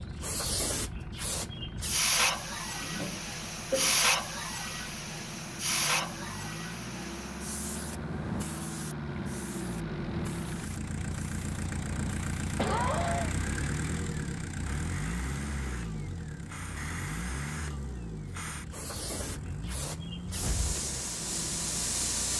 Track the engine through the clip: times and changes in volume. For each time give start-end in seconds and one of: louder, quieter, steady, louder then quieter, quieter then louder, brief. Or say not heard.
0.0-22.3 louder then quieter.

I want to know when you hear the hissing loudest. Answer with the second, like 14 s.
4 s.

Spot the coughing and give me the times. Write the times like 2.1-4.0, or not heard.
2.8-4.0, 12.6-13.3.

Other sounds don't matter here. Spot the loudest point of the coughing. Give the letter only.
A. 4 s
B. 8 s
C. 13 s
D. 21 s
C.